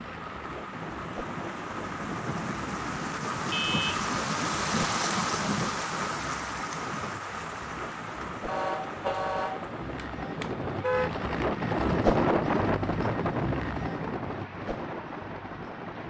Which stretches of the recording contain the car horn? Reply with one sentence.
You can hear the car horn from 3.5 to 4.1 s and from 8.4 to 11.1 s.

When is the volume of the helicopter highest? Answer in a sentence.
The loudest moment of the helicopter is at 12 seconds.